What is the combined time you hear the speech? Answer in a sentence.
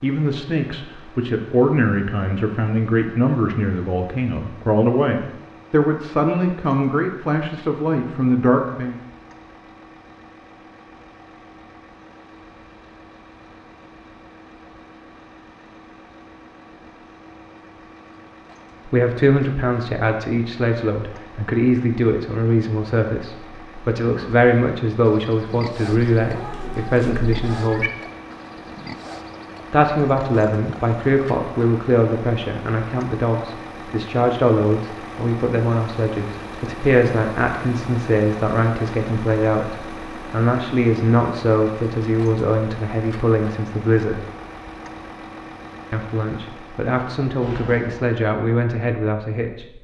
The speech can be heard for 36 seconds in total.